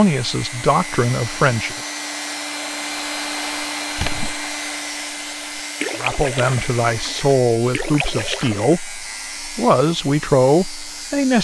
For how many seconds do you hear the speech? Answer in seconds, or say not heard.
7 s.